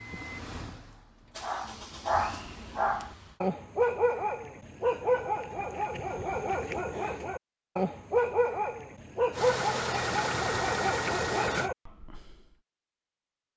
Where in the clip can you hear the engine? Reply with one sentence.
The engine can be heard from 0.0 to 3.4 s and from 9.3 to 11.7 s.